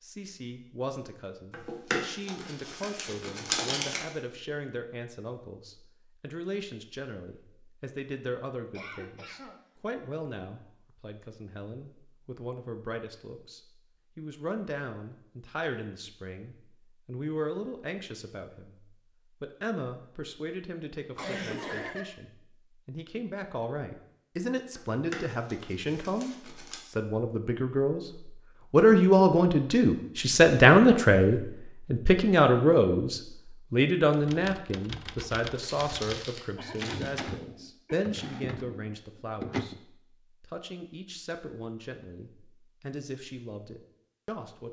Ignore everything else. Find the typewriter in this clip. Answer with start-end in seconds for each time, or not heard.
34.1-39.8.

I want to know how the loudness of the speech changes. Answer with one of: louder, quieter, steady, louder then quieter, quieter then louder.
louder then quieter.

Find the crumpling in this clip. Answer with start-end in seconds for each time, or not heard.
1.5-4.0, 24.8-26.8, 35.5-37.1.